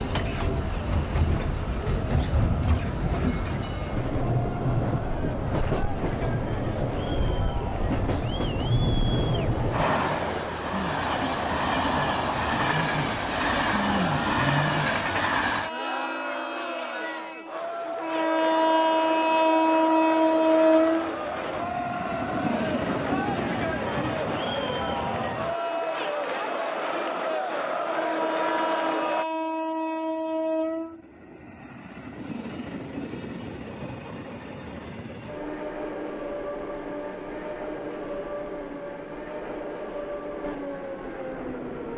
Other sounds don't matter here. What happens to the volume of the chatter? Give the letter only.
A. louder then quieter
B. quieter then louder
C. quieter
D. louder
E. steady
D.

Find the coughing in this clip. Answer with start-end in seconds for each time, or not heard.
not heard.